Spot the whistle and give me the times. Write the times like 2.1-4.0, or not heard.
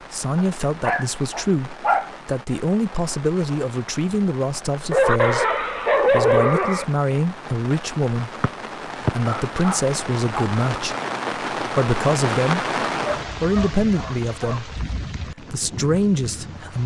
8.4-9.2.